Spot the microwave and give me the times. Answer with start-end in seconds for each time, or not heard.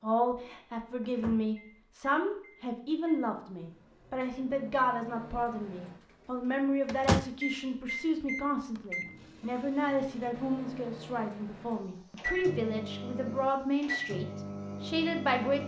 1.0-15.6.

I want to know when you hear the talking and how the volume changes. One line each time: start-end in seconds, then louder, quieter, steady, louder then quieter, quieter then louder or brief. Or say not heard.
0.0-15.6 steady.